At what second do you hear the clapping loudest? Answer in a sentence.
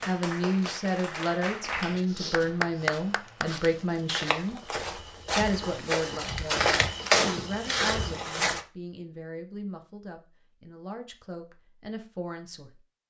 The loudest moment of the clapping is at 3 seconds.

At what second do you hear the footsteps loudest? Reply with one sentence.
The loudest moment of the footsteps is at 7 seconds.